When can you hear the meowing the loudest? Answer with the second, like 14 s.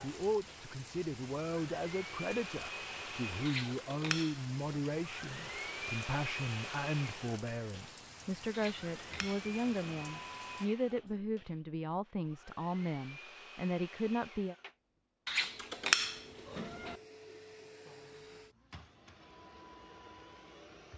16 s.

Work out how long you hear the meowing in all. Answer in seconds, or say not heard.
5 s.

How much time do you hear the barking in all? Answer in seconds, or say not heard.
not heard.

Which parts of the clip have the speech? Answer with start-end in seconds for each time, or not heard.
0.0-14.6.